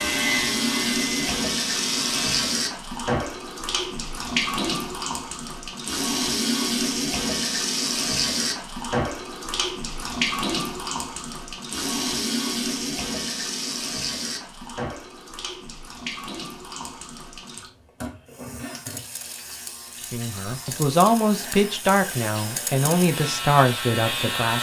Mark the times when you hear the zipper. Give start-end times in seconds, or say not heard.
not heard.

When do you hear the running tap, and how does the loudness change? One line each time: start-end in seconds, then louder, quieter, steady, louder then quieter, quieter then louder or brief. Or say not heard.
0.0-24.5 quieter.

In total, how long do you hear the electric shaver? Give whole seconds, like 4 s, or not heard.
9 s.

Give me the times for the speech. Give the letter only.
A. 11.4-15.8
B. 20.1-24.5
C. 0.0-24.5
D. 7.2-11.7
B.